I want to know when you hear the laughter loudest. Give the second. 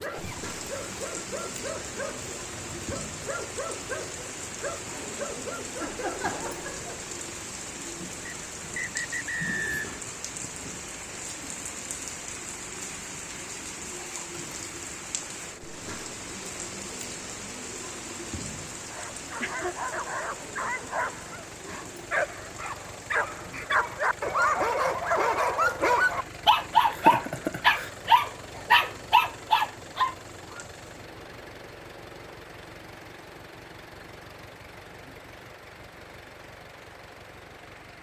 27 s.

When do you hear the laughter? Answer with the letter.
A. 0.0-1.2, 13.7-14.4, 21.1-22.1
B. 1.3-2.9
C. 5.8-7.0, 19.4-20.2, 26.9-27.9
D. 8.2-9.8
C.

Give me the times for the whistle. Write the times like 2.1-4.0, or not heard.
8.2-9.8.